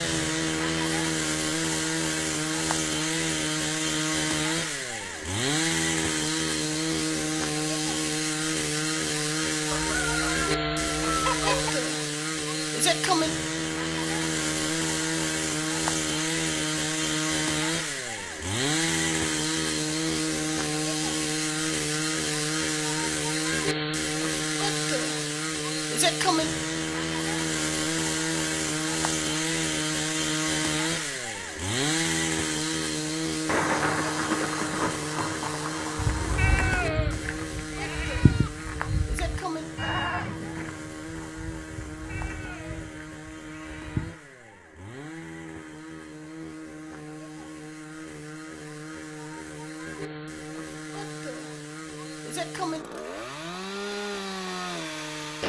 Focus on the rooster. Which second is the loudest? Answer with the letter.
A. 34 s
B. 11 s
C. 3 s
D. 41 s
B.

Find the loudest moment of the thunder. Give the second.
34 s.